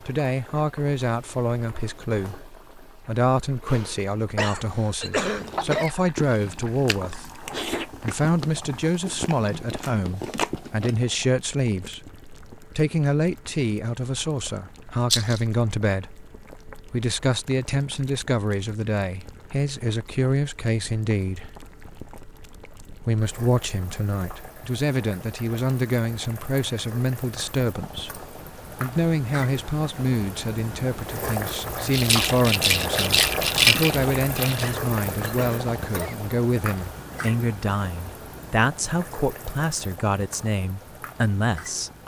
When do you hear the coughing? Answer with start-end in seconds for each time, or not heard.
4.3-6.0, 34.6-36.1.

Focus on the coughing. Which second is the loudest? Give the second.
5 s.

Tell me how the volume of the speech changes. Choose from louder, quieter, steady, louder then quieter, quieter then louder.
steady.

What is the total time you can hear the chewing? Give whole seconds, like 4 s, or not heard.
6 s.